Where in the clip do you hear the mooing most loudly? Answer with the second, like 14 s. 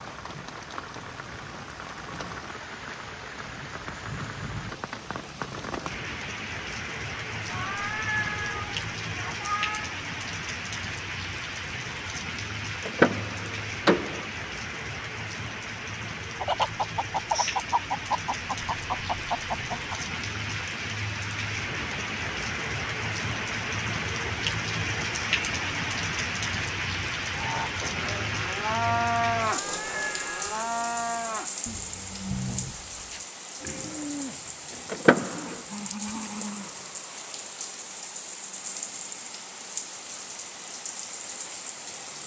29 s.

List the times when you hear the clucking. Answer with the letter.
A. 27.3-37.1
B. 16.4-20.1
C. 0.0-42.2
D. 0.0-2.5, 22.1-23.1
B.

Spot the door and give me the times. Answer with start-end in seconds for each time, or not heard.
12.8-14.2, 34.9-35.5.